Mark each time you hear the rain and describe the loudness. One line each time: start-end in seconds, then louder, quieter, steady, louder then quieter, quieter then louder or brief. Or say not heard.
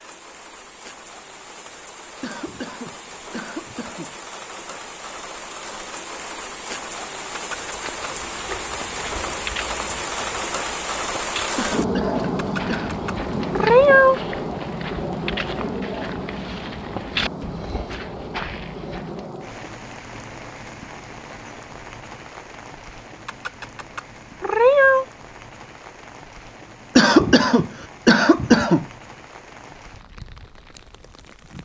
0.0-31.6 louder then quieter.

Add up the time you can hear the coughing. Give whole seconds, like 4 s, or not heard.
5 s.